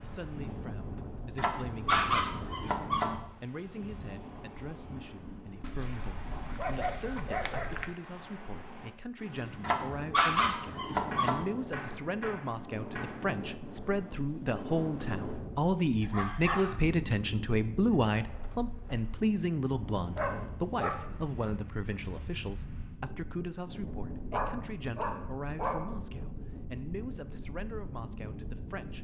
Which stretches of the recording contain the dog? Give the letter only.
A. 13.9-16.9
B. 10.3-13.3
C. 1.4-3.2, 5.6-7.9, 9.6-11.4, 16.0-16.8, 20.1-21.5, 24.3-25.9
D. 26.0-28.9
C.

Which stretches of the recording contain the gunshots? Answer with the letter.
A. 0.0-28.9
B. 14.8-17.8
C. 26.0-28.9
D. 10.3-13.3
D.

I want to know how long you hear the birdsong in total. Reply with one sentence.
You can't hear the birdsong here.